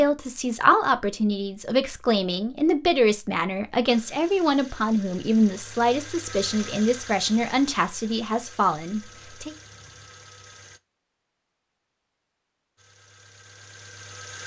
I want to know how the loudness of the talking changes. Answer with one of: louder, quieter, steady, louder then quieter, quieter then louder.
steady.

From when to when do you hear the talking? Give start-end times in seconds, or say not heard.
0.0-9.6.